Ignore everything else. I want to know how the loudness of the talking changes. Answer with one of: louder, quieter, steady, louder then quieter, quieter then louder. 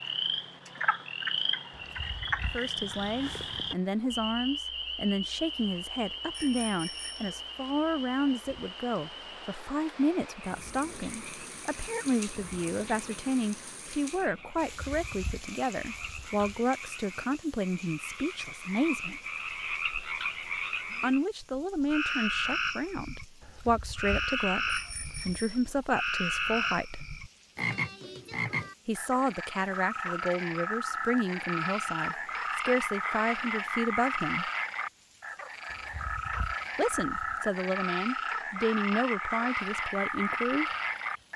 steady.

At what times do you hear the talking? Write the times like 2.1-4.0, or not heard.
2.5-19.2, 21.0-27.1, 28.9-34.5, 36.8-40.6.